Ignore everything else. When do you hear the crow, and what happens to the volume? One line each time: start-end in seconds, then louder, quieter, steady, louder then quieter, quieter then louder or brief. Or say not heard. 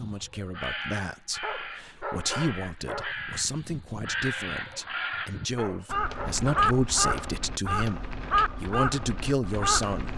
0.0-10.1 louder.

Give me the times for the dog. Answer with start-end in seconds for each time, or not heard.
1.4-3.1, 5.5-7.3.